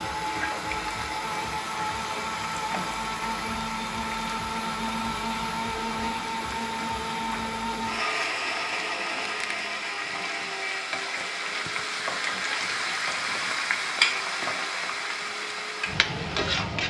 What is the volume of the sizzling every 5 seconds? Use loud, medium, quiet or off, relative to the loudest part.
medium, medium, loud, loud.